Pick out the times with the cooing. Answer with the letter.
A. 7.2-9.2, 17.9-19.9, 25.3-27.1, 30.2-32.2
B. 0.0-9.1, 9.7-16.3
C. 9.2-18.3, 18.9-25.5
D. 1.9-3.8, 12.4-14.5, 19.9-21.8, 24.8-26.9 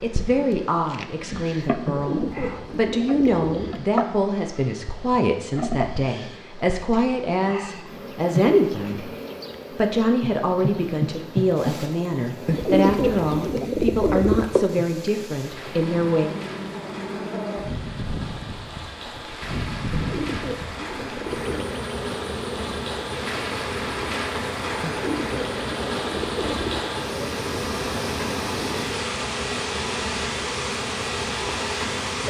D.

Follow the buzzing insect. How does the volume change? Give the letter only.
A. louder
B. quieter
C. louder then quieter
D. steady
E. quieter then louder
D.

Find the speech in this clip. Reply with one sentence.
You can hear the speech from 0.0 to 9.1 s and from 9.7 to 16.3 s.